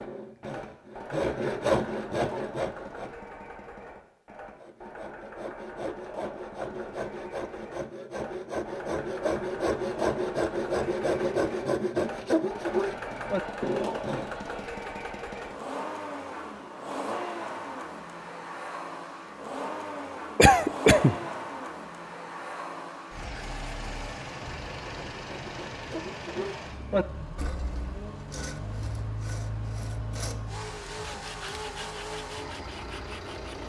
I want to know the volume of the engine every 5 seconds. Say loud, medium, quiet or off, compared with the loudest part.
medium, medium, loud, loud, loud, loud, loud.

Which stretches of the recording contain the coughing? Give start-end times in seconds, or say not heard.
20.4-21.1.